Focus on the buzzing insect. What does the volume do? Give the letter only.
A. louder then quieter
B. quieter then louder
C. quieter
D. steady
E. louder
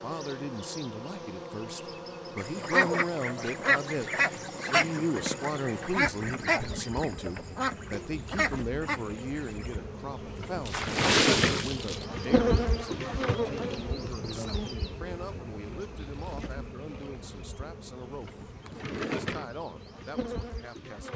A.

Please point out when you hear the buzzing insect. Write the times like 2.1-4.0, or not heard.
0.0-21.1.